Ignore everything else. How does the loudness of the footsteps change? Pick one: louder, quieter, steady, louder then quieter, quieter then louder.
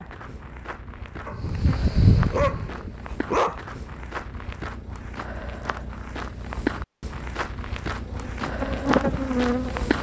louder.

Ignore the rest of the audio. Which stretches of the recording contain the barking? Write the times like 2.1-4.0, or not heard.
1.2-3.6.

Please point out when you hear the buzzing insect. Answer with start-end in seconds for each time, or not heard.
1.3-3.1, 8.0-9.9.